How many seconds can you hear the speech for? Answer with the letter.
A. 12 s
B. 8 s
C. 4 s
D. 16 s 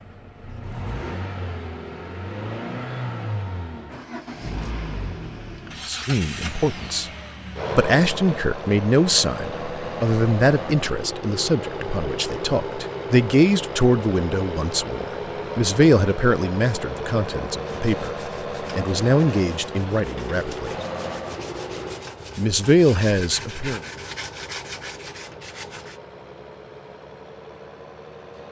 D.